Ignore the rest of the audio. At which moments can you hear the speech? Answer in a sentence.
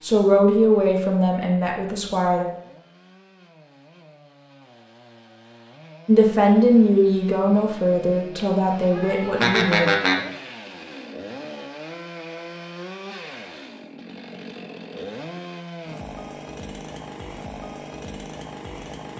You can hear the speech from 0.0 to 2.5 s and from 6.0 to 9.8 s.